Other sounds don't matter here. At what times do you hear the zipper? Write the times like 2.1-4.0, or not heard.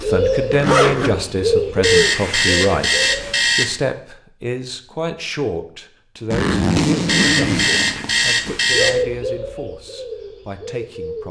0.5-1.1, 6.3-8.6.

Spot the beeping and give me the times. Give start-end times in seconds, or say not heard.
1.8-3.8, 7.0-9.1.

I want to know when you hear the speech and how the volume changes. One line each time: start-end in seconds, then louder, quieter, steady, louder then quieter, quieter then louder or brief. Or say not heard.
0.0-11.2 quieter.